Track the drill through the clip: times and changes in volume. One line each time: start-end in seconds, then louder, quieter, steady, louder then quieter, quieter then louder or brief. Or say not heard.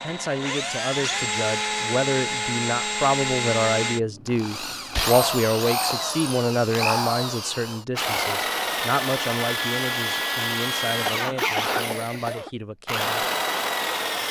0.0-14.2 steady.